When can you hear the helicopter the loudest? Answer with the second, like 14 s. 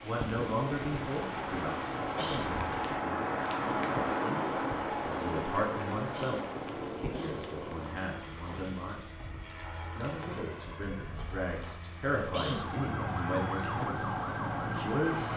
4 s.